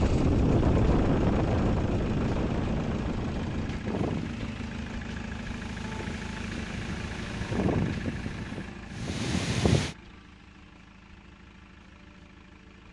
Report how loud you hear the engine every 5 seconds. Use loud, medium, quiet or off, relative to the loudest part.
loud, loud, quiet.